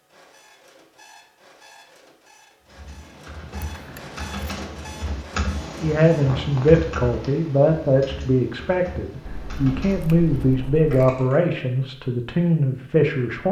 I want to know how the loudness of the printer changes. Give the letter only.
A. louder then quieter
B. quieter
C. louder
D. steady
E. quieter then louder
C.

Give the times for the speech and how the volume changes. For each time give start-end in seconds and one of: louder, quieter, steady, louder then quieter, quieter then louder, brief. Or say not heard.
5.8-13.4 steady.